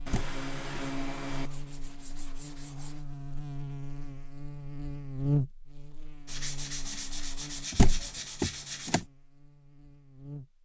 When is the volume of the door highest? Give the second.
8 s.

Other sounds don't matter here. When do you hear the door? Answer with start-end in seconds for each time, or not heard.
0.1-0.8, 7.7-9.0.